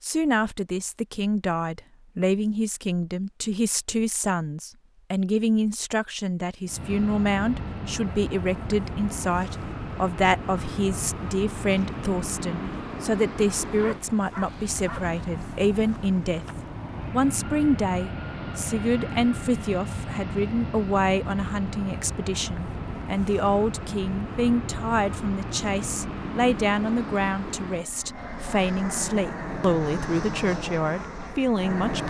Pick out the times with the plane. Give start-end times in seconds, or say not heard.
6.7-32.0.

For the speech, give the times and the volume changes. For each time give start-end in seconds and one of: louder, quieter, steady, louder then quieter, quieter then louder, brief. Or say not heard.
0.0-16.4 steady
17.1-32.0 steady.